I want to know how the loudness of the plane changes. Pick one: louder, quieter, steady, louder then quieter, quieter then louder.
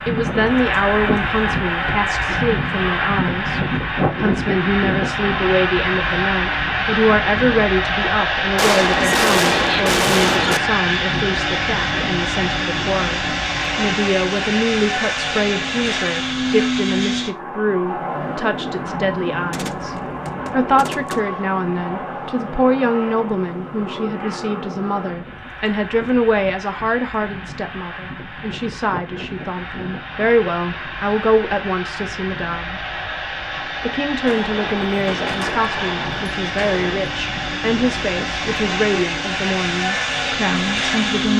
quieter then louder.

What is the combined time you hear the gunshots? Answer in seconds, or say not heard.
7 s.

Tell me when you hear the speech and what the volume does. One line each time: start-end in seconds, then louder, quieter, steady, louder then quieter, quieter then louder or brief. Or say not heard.
0.1-32.9 steady
33.8-41.3 steady.